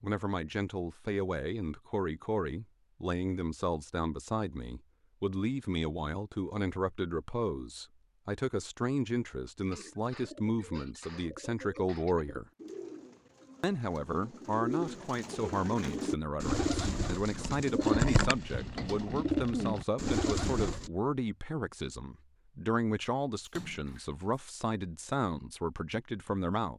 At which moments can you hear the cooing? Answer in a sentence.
The cooing can be heard from 9.7 to 20.9 s.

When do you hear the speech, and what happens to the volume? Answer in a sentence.
The speech can be heard from 0.0 to 12.4 s, at a steady volume; and from 13.6 to 26.7 s, at a steady volume.